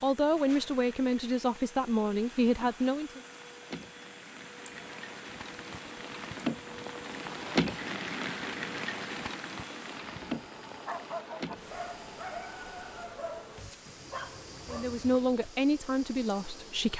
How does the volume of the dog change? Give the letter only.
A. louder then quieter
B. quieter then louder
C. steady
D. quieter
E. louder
B.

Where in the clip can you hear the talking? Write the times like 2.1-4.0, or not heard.
0.0-3.2, 14.7-16.9.